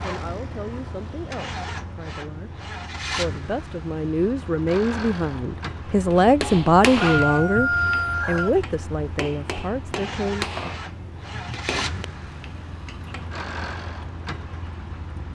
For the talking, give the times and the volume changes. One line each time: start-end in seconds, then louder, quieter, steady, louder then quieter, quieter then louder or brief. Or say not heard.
0.0-2.5 brief
3.1-10.6 louder then quieter.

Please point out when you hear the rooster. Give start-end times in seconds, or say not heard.
7.0-8.6.